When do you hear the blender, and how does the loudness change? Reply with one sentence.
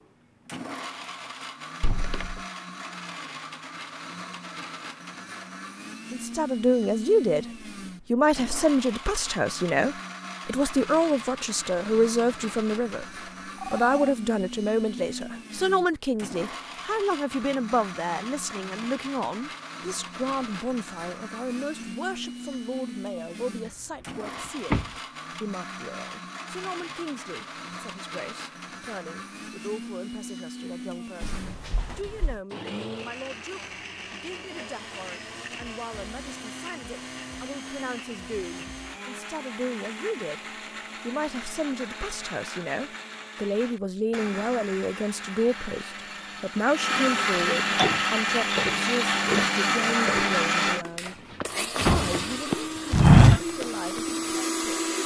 The blender can be heard from 0.0 to 55.0 s, getting louder.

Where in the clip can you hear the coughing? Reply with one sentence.
The coughing can't be heard in this clip.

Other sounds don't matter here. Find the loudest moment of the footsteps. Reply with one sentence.
The loudest moment of the footsteps is at 53 seconds.